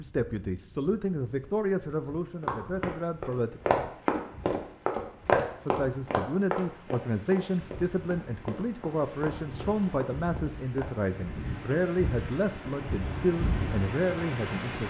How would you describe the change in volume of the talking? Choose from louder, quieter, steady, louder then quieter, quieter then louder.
steady.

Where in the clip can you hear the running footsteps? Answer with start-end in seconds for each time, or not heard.
2.4-10.9.